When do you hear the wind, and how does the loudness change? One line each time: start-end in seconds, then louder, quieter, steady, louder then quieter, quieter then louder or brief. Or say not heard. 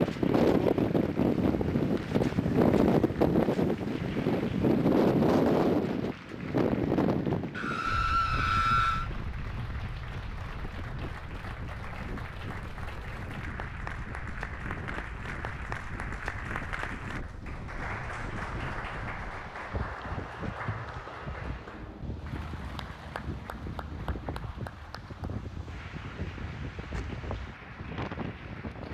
0.0-28.9 quieter.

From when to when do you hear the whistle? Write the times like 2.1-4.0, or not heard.
not heard.